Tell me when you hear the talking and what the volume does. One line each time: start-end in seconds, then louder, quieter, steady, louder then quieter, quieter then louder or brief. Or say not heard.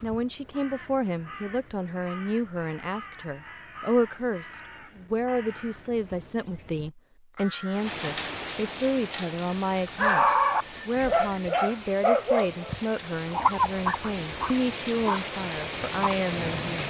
0.0-16.8 steady.